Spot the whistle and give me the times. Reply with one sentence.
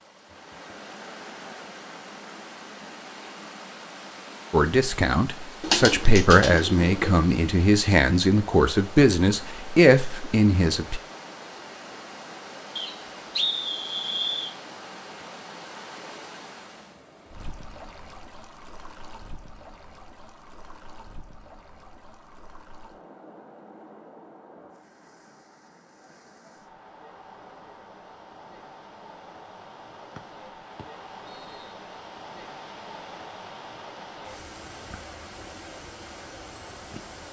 The whistle can be heard from 12.8 to 14.6 s and from 30.1 to 31.8 s.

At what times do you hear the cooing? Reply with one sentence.
You can hear the cooing from 5.6 to 7.2 s.